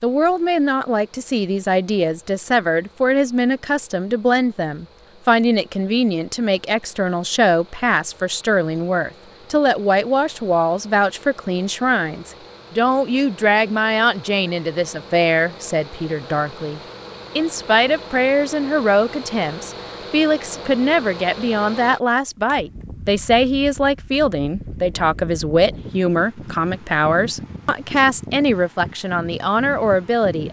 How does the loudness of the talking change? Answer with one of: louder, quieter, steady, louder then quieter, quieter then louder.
steady.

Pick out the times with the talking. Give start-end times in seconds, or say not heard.
0.0-30.4.